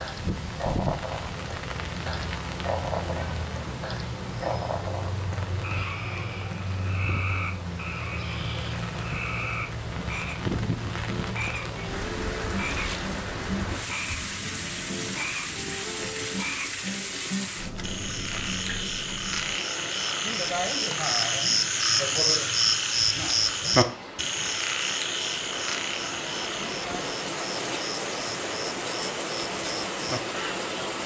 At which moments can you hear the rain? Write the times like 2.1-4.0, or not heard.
0.0-31.0.